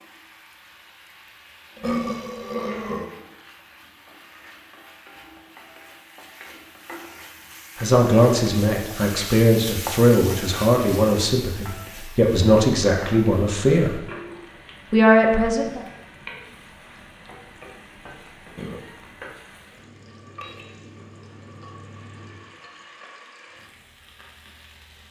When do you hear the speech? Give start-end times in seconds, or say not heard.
7.8-14.0, 14.9-15.8.